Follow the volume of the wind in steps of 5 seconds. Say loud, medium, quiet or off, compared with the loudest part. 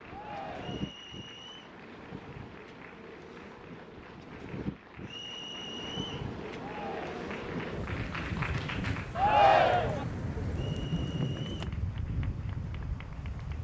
medium, loud, loud.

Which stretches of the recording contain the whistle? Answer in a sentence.
You can hear the whistle from 0.6 to 1.7 s, from 5.0 to 6.3 s and from 10.6 to 11.7 s.